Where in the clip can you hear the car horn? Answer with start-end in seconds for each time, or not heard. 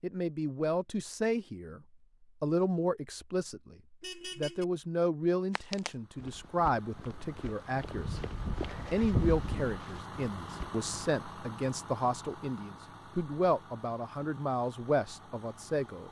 4.0-4.7.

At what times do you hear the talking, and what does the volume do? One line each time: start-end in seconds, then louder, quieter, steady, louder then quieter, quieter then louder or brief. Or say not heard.
0.0-1.8 brief
2.4-3.8 brief
4.3-16.0 steady.